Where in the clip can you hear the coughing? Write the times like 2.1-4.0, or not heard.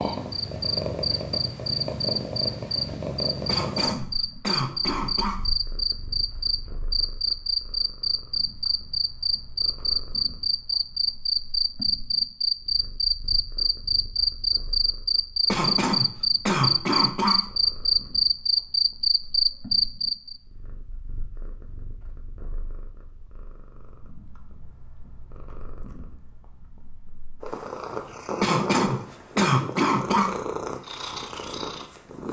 3.5-5.4, 15.4-17.4, 28.4-30.3.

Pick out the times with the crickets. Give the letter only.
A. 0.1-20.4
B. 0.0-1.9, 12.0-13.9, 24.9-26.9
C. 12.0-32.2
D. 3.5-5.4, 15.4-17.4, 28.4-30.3
A.